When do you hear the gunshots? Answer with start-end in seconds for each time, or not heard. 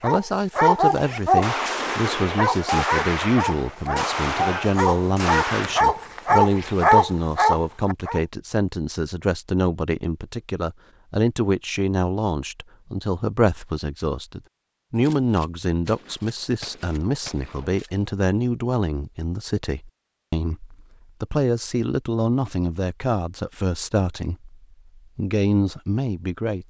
1.4-5.8, 14.9-18.1.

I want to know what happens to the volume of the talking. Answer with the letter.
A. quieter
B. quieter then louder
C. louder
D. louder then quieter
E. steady
E.